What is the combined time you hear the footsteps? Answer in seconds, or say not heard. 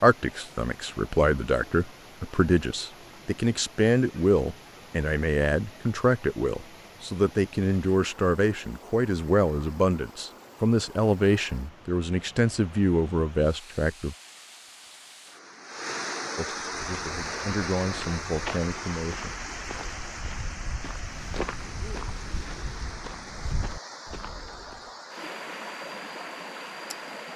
8 s.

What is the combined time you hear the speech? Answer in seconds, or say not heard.
17 s.